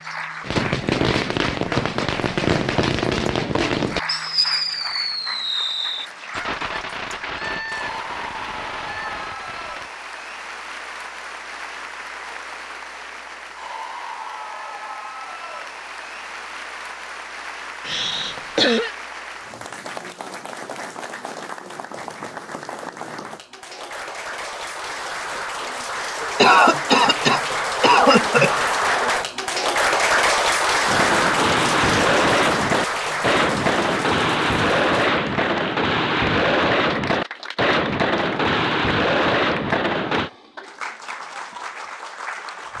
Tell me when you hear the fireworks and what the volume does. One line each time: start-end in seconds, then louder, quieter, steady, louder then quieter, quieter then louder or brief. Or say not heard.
0.4-9.9 quieter
30.9-40.3 steady.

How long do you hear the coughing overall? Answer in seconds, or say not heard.
3 s.